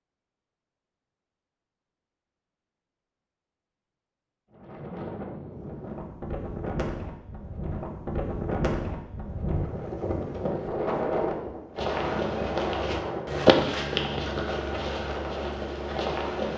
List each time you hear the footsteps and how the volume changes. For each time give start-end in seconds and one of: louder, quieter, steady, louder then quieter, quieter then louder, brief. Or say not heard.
11.8-16.5 louder then quieter.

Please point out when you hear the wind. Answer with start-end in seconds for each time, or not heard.
4.5-16.5.